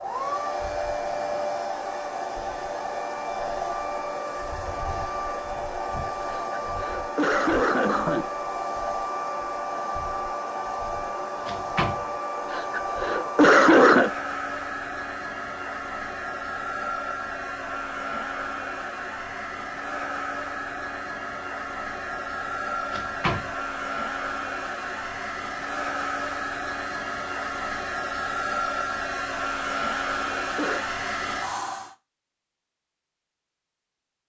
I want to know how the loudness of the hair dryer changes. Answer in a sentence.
The volume of the hair dryer stays about the same.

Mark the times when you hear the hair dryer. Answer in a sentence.
You can hear the hair dryer from 0.0 to 31.9 s.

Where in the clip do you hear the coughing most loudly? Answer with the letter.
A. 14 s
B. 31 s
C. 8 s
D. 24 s
A.